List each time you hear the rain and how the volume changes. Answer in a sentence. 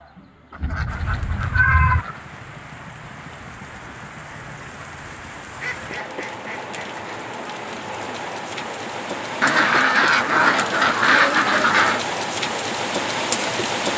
You can hear the rain from 0.0 to 13.9 s, getting louder.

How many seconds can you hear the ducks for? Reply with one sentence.
The ducks can be heard for 6 seconds in total.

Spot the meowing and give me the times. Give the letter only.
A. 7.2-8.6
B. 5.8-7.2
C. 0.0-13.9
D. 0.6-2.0
D.